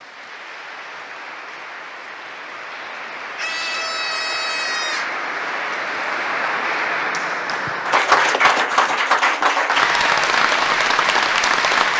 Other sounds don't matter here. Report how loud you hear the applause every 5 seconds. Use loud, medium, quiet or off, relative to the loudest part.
quiet, loud, loud.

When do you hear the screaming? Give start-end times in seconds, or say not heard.
3.4-5.2.